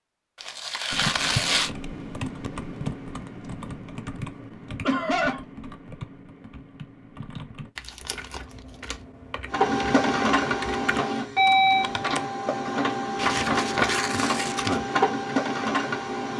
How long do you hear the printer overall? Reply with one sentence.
You can hear the printer for 7 seconds altogether.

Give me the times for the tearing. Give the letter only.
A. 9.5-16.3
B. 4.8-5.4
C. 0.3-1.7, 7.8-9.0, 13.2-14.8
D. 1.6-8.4
C.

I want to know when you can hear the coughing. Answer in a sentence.
The coughing can be heard from 4.8 to 5.4 s.